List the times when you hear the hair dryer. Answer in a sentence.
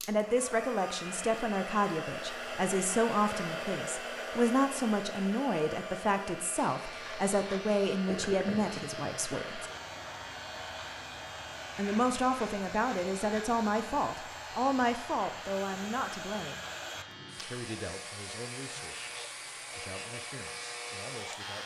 The hair dryer can be heard from 0.0 to 21.6 s.